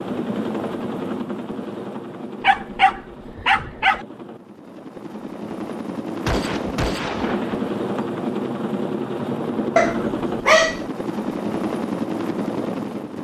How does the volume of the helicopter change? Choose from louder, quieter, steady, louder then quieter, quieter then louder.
quieter then louder.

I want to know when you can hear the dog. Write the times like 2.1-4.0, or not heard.
2.4-4.0, 9.8-10.8.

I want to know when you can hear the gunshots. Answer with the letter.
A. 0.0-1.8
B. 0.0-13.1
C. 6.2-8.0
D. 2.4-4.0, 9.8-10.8
C.